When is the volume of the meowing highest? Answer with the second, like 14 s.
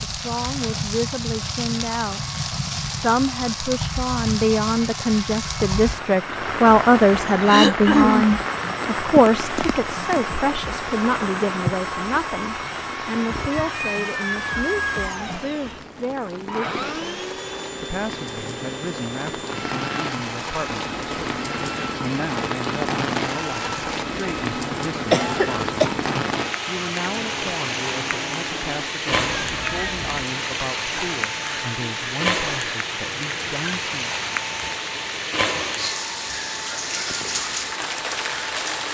15 s.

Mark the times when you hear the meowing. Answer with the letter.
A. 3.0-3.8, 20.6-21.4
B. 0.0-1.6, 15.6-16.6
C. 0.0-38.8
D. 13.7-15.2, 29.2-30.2
D.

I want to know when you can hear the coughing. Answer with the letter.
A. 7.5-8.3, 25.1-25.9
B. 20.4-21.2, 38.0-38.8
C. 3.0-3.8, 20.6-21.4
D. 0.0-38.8
A.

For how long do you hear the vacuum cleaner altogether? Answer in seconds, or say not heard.
39 s.